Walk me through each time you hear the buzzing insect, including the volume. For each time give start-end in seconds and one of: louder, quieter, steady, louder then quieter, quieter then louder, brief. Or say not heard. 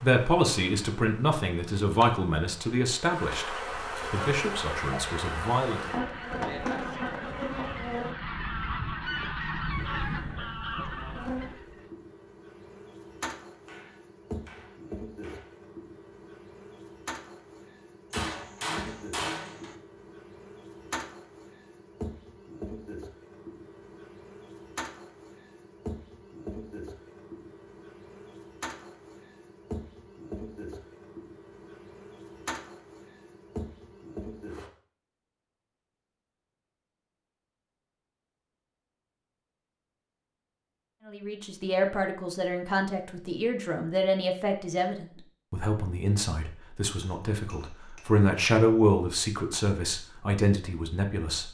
0.0-8.2 louder
9.7-34.7 steady.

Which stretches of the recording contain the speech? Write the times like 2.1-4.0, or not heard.
0.0-5.8, 41.0-51.4.